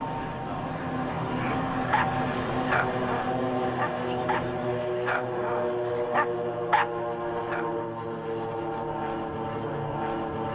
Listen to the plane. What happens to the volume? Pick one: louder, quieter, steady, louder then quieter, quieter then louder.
steady.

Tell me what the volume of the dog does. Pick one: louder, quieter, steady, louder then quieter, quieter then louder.
quieter then louder.